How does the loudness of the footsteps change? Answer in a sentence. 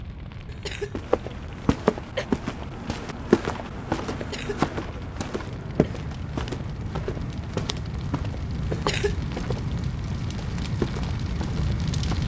The volume of the footsteps goes down.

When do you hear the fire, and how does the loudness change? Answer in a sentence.
The fire can be heard from 0.0 to 12.2 s, getting louder.